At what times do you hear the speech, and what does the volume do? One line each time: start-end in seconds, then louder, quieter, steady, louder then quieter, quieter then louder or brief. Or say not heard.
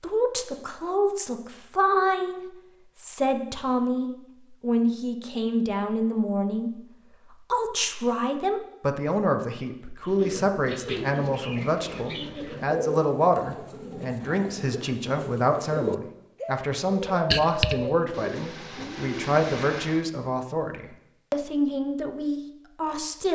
0.0-23.3 steady.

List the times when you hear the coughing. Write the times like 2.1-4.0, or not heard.
17.3-17.8.